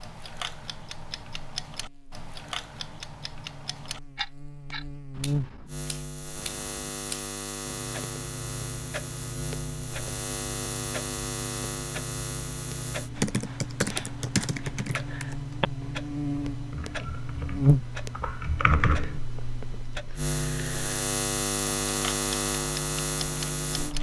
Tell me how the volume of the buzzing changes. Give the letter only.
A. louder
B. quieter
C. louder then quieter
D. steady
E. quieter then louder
A.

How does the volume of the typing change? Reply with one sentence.
The loudness of the typing goes down, then up.